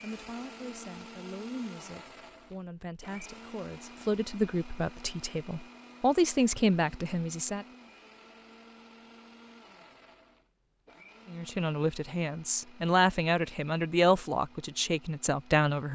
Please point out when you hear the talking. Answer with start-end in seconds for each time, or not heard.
0.0-7.7, 11.2-15.8.